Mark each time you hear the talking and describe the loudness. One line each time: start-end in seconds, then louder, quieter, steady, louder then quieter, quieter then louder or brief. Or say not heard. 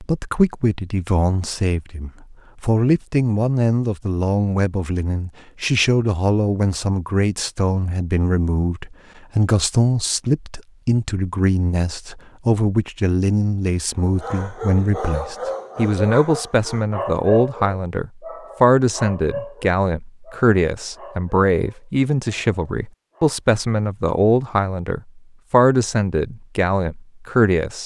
0.0-27.8 steady.